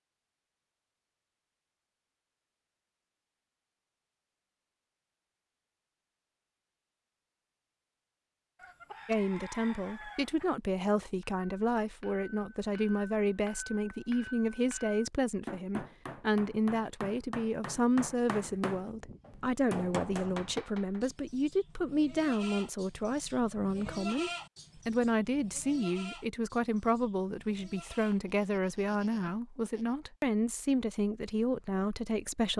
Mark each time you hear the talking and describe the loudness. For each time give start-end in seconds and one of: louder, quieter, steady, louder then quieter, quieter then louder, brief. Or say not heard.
9.1-32.5 steady.